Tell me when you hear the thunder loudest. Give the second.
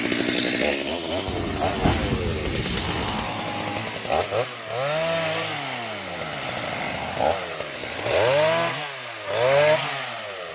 2 s.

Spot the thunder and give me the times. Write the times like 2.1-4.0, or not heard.
1.2-3.3.